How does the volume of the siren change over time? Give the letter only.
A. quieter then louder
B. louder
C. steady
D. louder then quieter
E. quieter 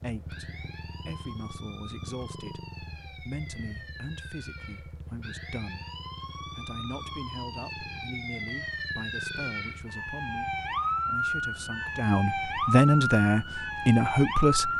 B.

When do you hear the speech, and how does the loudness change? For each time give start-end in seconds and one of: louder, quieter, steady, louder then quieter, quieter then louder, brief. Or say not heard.
0.0-14.7 louder.